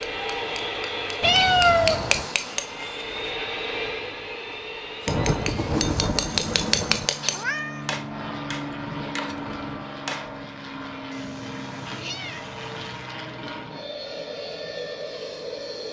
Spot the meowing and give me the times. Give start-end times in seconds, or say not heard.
1.2-2.2, 7.3-7.9, 11.1-13.1.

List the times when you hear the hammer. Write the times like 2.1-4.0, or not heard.
0.0-3.3, 5.0-10.3.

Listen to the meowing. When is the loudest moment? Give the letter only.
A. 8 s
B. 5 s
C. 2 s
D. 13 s
C.